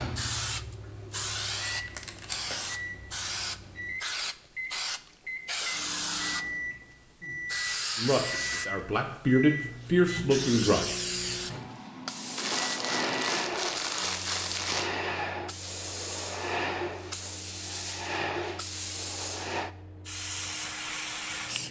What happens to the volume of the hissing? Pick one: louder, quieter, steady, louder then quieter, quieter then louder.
steady.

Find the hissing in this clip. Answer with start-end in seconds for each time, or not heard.
0.0-21.6.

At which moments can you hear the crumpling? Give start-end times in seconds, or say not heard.
1.7-2.8, 12.3-14.9.